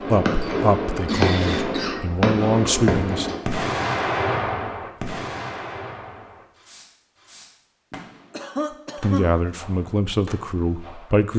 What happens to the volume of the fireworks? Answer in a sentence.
The volume of the fireworks goes down.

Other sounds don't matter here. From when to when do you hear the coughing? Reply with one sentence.
The coughing can be heard from 0.4 to 2.0 s and from 7.9 to 9.3 s.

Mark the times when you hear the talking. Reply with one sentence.
You can hear the talking from 0.1 to 3.3 s and from 9.0 to 11.3 s.